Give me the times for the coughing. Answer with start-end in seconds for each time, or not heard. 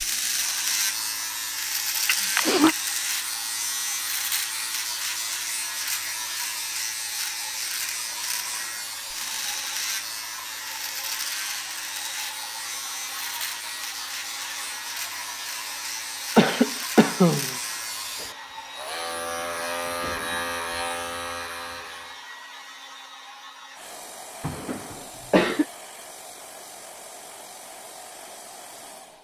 2.0-2.8, 16.4-17.6, 24.4-25.6.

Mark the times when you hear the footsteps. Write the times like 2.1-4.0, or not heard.
not heard.